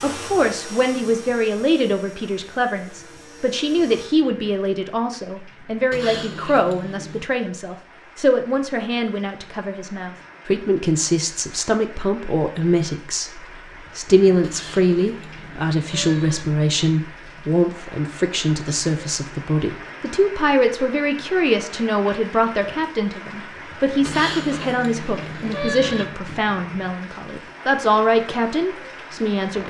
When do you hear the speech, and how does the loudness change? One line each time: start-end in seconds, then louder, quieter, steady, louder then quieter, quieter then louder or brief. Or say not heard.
0.0-29.6 steady.